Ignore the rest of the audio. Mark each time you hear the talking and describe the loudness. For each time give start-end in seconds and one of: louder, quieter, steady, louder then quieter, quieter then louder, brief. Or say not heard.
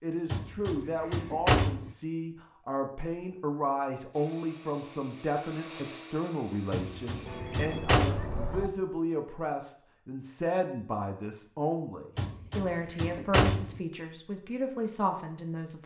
0.0-15.8 steady.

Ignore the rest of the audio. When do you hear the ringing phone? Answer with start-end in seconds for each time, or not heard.
7.2-8.7.